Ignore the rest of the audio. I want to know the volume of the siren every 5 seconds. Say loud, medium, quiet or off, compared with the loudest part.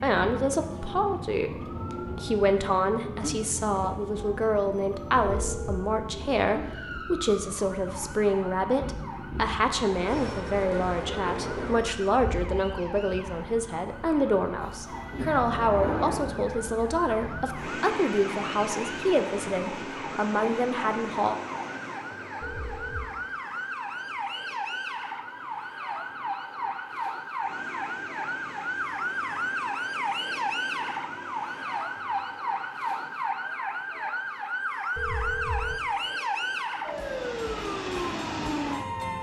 medium, medium, quiet, medium, medium, loud, loud, loud.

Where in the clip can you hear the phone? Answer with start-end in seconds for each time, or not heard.
5.2-5.9, 22.4-23.1, 35.0-35.8.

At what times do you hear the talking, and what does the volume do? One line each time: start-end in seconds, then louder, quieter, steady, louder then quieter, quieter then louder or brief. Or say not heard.
0.0-1.5 brief
2.1-21.4 steady.